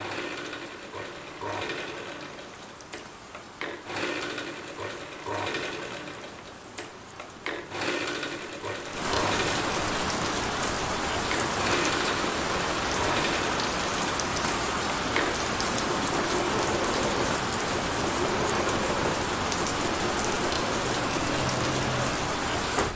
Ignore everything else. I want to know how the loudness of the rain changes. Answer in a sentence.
The loudness of the rain goes up.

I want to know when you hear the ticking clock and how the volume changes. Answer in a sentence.
The ticking clock can't be heard in this clip.